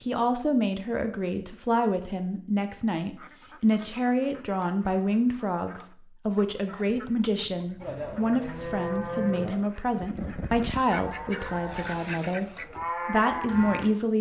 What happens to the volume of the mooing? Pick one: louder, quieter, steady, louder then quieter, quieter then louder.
quieter then louder.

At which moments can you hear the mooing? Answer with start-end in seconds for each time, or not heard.
7.8-13.8.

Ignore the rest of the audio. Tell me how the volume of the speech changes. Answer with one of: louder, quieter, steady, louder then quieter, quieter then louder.
steady.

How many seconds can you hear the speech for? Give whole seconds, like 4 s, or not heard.
14 s.